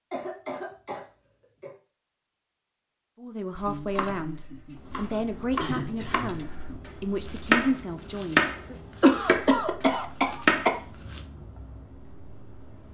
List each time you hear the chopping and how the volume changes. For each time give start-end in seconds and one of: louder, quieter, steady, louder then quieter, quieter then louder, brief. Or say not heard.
3.5-11.2 louder.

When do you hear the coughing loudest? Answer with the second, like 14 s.
9 s.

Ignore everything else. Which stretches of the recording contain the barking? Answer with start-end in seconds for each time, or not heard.
not heard.